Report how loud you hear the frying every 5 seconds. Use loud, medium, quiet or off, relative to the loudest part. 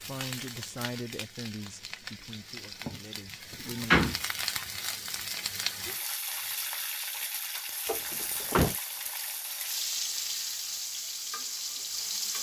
medium, loud, loud.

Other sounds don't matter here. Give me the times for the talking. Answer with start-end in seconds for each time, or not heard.
0.0-4.0.